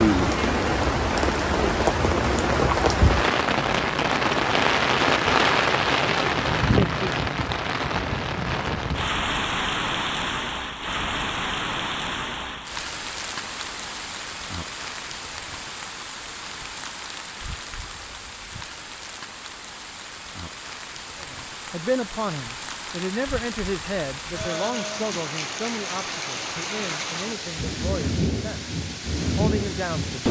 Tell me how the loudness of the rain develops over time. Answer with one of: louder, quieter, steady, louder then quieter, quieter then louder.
quieter then louder.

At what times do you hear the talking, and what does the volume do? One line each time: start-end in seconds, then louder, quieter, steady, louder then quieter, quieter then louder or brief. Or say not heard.
21.1-28.8 quieter
29.4-30.2 brief.